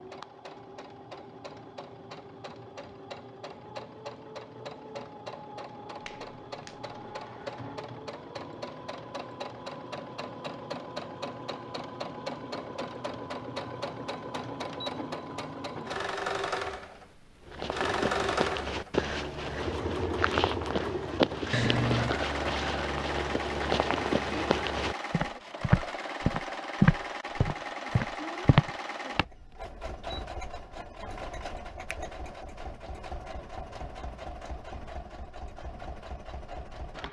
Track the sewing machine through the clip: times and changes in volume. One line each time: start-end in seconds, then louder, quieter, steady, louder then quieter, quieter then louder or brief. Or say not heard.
0.0-37.0 louder then quieter.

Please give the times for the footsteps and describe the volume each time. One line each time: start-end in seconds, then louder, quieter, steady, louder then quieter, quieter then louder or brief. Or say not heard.
17.4-29.2 louder.